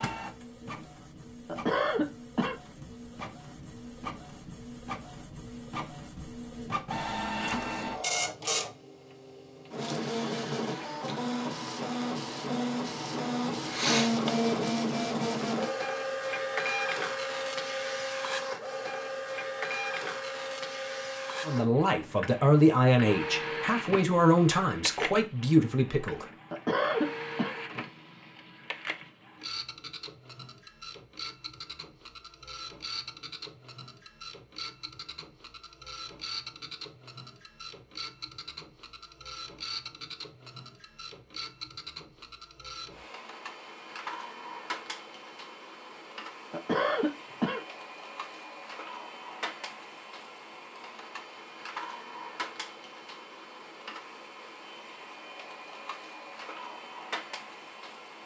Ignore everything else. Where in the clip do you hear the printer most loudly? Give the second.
14 s.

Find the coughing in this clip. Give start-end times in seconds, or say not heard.
1.4-2.5, 26.5-27.6, 46.5-47.6.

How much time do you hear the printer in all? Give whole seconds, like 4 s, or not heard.
58 s.